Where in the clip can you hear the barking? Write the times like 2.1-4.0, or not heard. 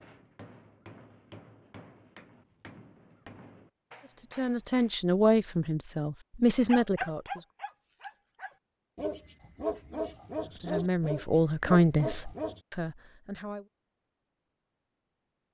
6.7-12.6.